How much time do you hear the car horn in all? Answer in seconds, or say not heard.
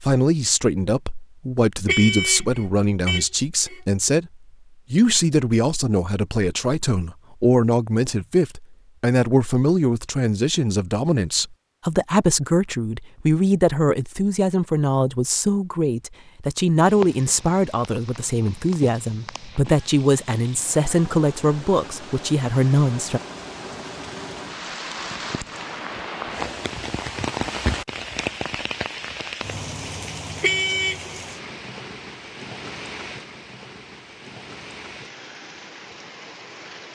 3 s.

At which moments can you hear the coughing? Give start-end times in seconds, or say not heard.
not heard.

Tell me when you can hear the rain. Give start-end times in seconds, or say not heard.
16.8-36.8.